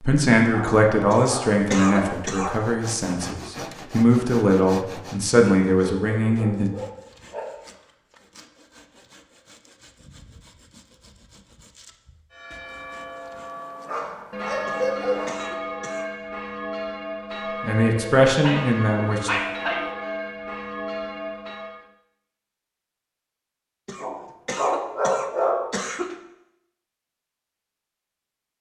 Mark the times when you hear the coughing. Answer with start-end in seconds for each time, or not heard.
1.1-2.5, 14.7-16.1, 23.9-26.2.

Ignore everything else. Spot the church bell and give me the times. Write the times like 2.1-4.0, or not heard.
12.3-21.9.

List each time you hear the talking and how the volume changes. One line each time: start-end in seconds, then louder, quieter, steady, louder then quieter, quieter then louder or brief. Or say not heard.
0.0-6.7 quieter then louder
17.6-19.3 brief.